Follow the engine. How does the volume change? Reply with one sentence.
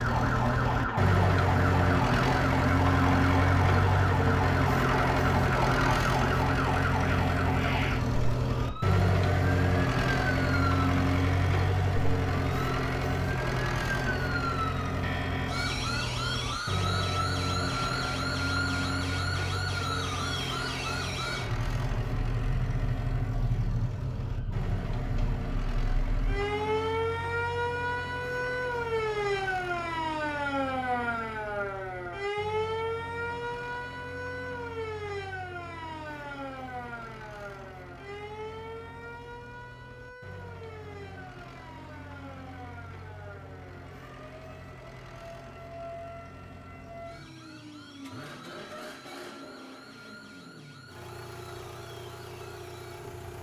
The volume of the engine goes down.